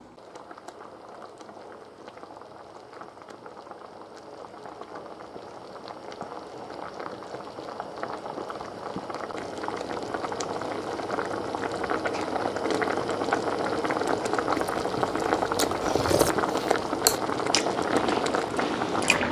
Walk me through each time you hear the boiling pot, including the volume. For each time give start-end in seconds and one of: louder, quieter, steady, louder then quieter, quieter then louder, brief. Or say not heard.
0.0-19.2 louder.